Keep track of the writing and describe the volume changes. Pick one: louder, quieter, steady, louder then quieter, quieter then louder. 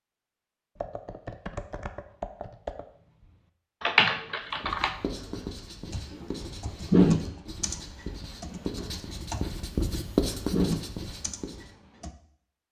louder.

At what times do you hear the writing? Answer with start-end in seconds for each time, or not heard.
4.5-11.7.